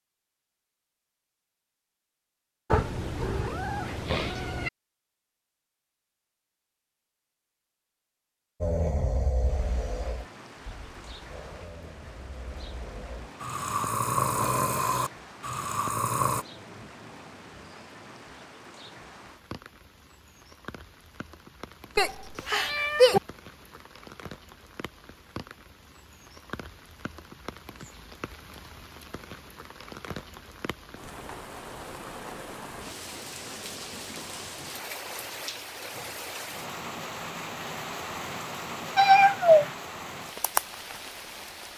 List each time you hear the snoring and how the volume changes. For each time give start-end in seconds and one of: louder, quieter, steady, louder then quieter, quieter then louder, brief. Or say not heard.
8.6-16.4 quieter then louder.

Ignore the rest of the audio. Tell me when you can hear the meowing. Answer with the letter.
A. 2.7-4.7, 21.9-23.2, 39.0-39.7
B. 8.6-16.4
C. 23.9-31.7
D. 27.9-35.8
A.